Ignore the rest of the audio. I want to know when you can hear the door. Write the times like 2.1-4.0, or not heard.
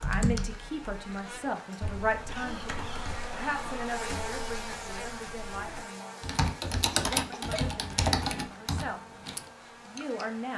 not heard.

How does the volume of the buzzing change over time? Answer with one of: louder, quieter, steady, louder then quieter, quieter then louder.
louder then quieter.